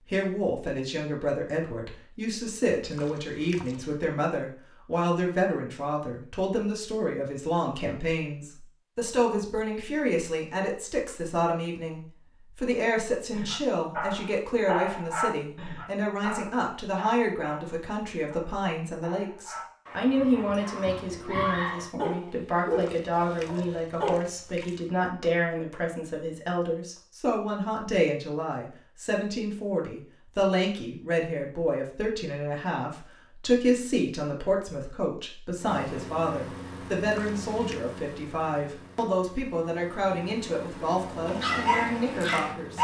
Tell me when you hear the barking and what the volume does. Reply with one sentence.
You can hear the barking from 13.3 to 24.2 s, getting quieter then louder; and briefly from 41.2 to 42.8 s.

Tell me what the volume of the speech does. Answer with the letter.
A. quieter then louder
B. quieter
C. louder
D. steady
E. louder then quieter
D.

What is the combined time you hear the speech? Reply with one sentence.
You can hear the speech for 43 seconds altogether.